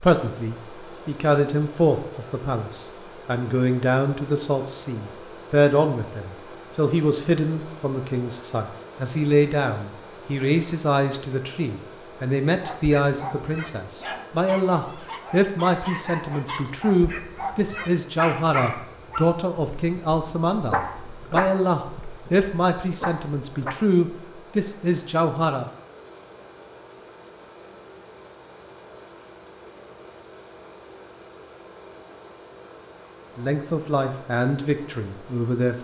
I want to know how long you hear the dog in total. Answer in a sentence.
You can hear the dog for 11 seconds altogether.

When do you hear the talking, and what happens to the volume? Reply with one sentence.
The talking can be heard from 0.0 to 25.6 s, at a steady volume; and briefly from 33.4 to 35.8 s.